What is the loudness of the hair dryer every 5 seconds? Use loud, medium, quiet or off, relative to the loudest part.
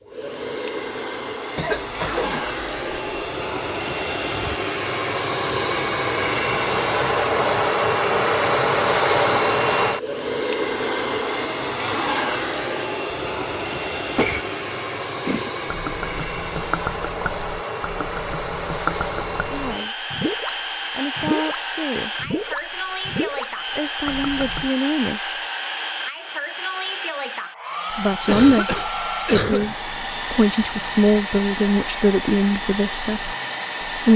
medium, loud, medium, medium, medium, medium, medium.